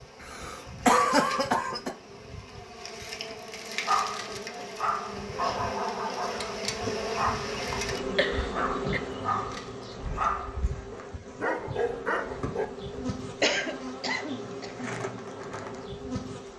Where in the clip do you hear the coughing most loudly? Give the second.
1 s.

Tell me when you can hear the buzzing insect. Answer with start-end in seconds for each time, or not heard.
0.0-16.5.